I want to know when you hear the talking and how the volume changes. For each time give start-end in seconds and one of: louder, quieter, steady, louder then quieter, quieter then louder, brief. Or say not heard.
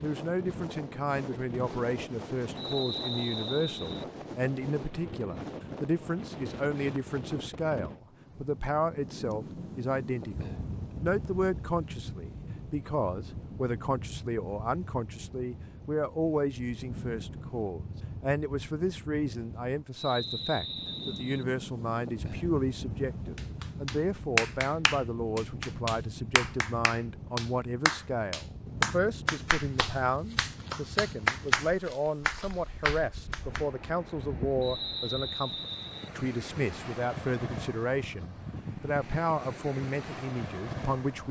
0.0-41.2 steady.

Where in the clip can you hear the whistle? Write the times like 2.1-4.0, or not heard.
2.5-4.0, 19.9-21.4, 34.6-36.1.